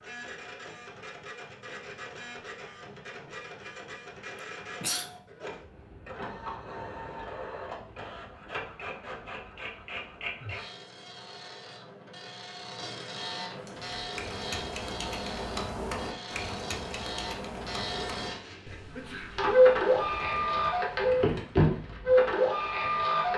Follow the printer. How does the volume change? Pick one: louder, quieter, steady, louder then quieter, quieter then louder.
louder.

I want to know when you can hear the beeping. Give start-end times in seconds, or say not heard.
not heard.